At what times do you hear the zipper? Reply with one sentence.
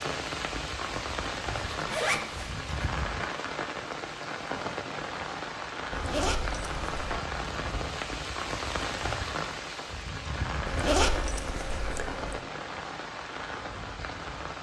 You can hear the zipper from 1.7 to 2.6 s, from 5.9 to 7.2 s and from 10.7 to 12.4 s.